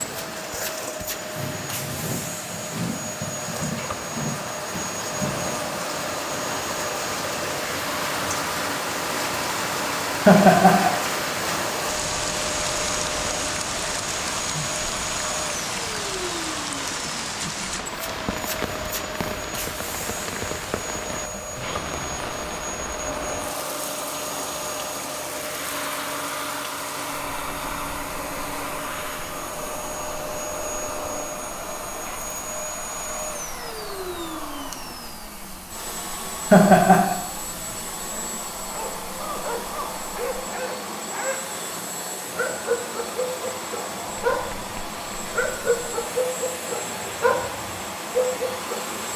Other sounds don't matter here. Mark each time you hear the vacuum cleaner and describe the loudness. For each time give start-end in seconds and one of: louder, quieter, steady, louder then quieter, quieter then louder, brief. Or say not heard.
0.0-49.1 steady.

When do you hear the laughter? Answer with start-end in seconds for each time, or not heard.
10.2-10.9, 36.5-37.1.